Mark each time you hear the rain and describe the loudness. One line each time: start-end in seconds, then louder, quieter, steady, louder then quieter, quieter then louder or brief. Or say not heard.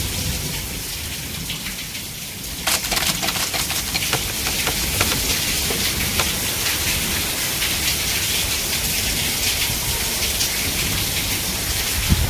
0.0-12.2 louder.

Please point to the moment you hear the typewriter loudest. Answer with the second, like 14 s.
3 s.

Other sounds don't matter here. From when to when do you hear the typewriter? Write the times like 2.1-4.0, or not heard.
2.6-6.2.